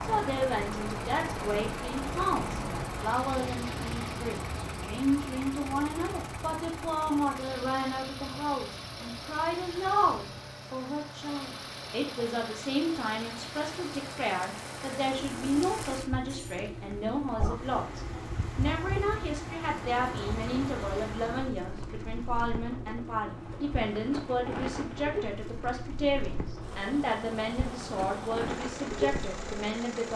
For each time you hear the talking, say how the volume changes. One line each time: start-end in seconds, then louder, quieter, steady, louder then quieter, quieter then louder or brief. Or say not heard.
0.0-30.1 steady.